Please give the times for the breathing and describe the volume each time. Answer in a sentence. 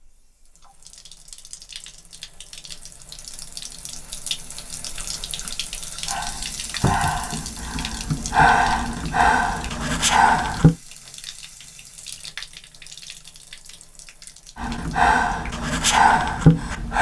The breathing can be heard from 6.0 to 10.8 s, getting quieter then louder; and briefly from 14.6 to 16.9 s.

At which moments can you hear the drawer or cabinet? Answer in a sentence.
The drawer or cabinet can be heard from 6.8 to 7.2 s.